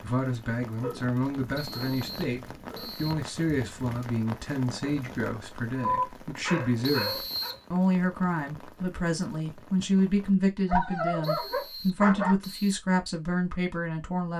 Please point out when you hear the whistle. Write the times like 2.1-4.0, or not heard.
1.6-3.1, 6.8-7.7, 11.2-12.8.